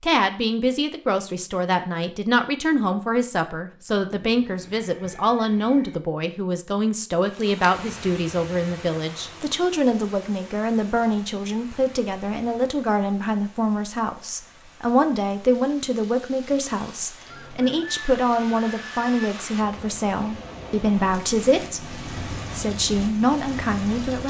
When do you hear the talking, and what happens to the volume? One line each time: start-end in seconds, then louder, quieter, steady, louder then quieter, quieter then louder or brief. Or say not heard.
0.0-24.2 steady.